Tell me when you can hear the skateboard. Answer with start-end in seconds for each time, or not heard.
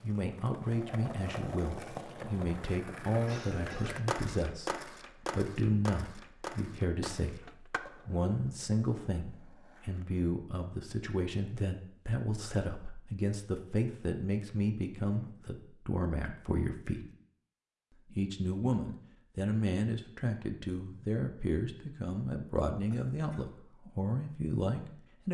0.0-10.2.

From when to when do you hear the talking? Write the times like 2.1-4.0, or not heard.
0.0-17.1, 18.1-25.2.